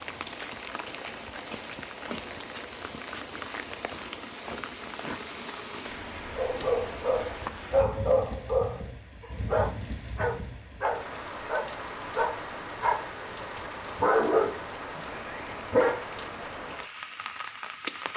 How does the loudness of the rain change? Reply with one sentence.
The loudness of the rain stays about the same.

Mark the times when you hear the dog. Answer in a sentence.
You can hear the dog from 6.3 to 13.1 s and from 14.0 to 16.0 s.